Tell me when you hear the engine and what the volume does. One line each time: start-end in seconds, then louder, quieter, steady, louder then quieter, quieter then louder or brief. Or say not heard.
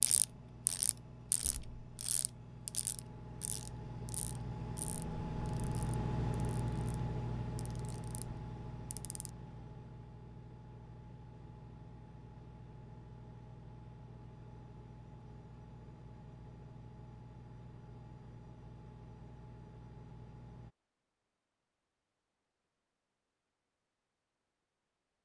0.0-20.7 louder then quieter.